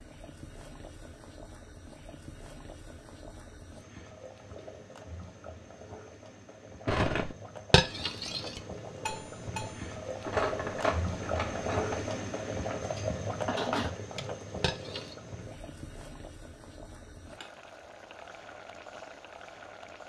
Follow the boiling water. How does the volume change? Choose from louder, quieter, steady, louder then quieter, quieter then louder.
louder then quieter.